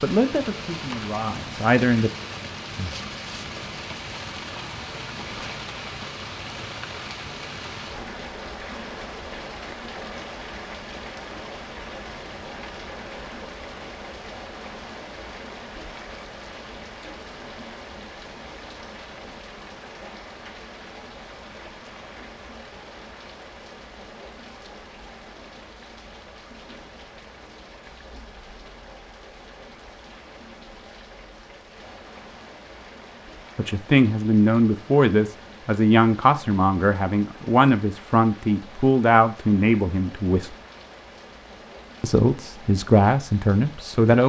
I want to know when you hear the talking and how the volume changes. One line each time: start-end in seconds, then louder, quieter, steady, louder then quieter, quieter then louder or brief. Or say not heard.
0.0-2.1 brief
33.5-40.5 steady
42.0-44.2 brief.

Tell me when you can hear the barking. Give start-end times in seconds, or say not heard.
not heard.